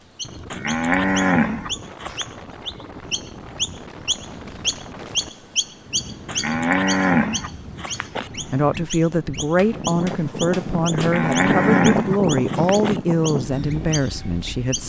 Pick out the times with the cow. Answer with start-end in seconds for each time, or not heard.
0.5-2.2, 6.2-8.3, 10.9-13.0.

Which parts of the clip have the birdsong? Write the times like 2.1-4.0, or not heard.
0.0-14.8.